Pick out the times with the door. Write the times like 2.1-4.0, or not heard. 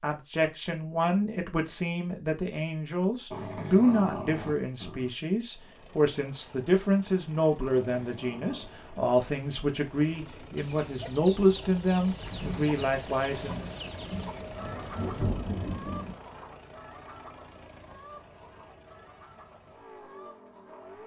not heard.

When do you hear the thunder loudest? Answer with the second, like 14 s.
15 s.